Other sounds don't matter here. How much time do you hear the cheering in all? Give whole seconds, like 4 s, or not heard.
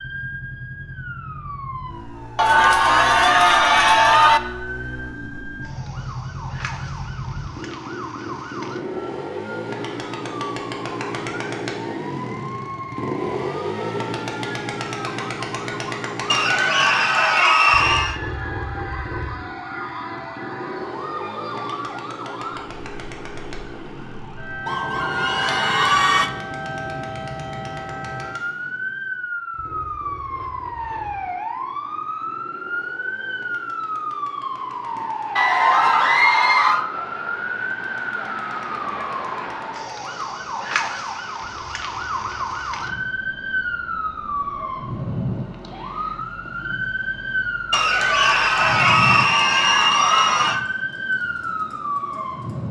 10 s.